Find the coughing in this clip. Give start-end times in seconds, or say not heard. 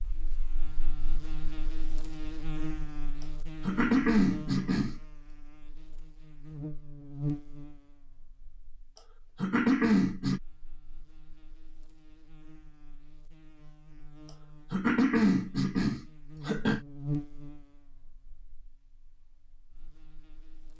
3.6-5.0, 9.4-10.4, 14.7-16.8.